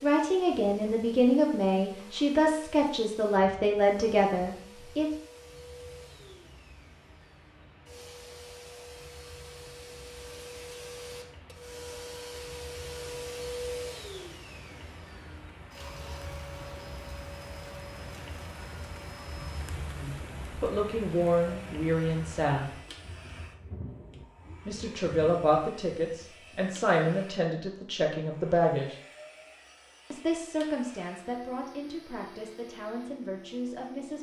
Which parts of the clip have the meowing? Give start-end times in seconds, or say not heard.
not heard.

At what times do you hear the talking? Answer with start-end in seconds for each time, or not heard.
0.0-5.0, 20.0-22.6, 24.6-28.9, 30.1-34.1.